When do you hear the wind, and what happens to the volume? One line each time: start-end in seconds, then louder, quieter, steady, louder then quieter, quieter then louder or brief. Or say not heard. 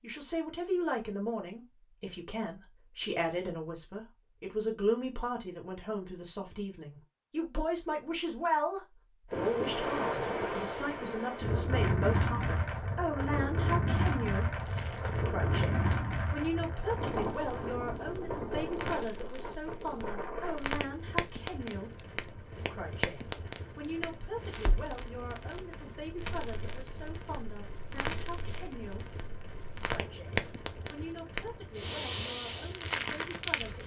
9.3-33.8 quieter.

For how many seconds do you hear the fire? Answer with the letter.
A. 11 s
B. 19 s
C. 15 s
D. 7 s
B.